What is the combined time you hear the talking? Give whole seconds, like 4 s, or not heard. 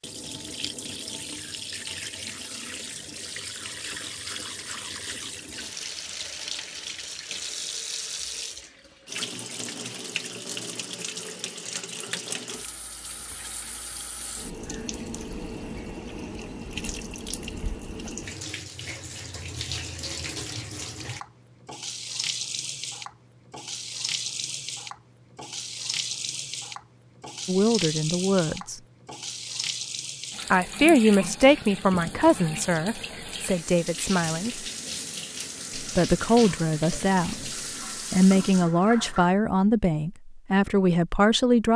11 s.